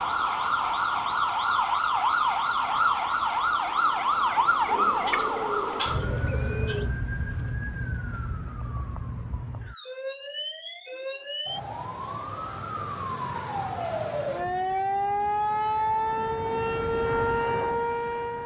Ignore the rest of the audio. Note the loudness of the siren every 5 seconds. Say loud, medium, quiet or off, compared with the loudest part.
loud, medium, medium, loud.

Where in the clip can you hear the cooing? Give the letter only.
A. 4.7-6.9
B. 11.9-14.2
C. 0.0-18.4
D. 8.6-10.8
A.